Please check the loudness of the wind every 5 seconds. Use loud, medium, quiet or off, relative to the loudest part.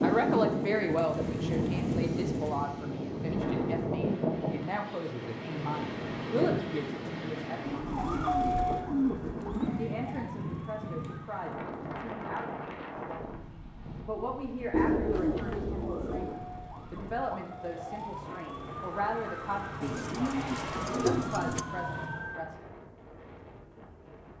loud, medium, medium, quiet, quiet.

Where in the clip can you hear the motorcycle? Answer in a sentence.
The motorcycle can't be heard in this clip.